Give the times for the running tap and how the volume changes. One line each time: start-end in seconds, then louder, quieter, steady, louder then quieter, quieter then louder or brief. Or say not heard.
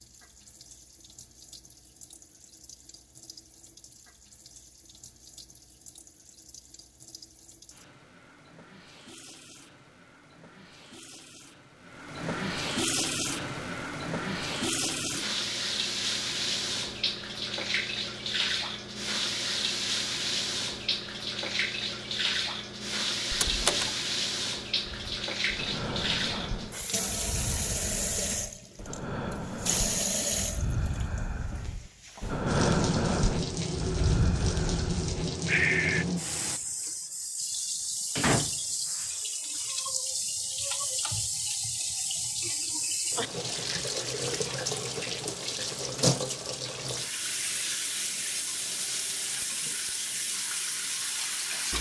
0.0-51.7 louder.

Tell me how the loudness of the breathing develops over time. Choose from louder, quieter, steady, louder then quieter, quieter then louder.
louder.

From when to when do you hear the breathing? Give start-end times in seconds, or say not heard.
24.9-36.0.